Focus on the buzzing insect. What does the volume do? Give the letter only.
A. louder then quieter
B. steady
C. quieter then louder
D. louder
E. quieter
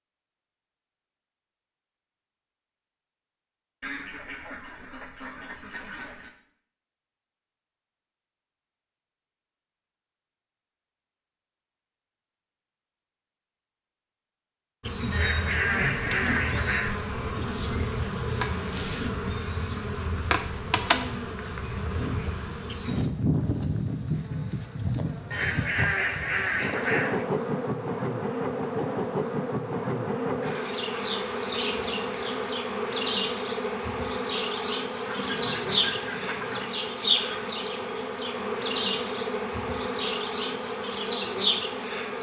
B.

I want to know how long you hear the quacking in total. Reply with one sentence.
The quacking can be heard for 8 seconds in total.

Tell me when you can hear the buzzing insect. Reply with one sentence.
You can hear the buzzing insect from 14.8 to 42.1 s.